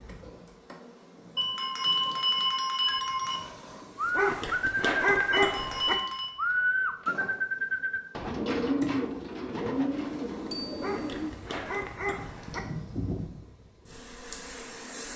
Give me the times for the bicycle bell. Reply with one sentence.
You can hear the bicycle bell from 1.4 to 3.4 s, from 5.3 to 6.3 s and from 10.5 to 11.2 s.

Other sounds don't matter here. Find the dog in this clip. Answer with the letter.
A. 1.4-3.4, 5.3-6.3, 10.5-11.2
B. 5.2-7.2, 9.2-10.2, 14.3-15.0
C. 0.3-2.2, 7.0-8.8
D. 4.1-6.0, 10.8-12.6
D.